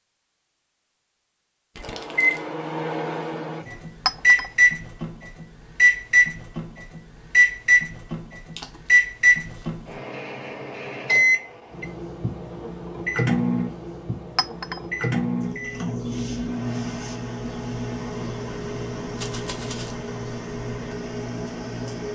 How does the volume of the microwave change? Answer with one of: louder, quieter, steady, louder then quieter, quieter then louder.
quieter.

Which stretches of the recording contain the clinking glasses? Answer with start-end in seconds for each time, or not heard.
4.0-4.5, 14.3-14.8.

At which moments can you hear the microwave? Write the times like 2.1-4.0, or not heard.
1.8-22.1.